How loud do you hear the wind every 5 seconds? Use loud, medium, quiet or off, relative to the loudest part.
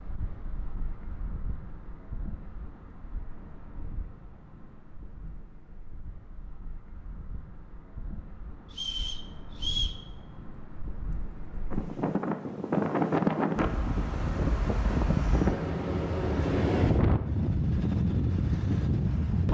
quiet, quiet, loud, loud.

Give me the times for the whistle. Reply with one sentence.
The whistle can be heard from 8.7 to 10.0 s.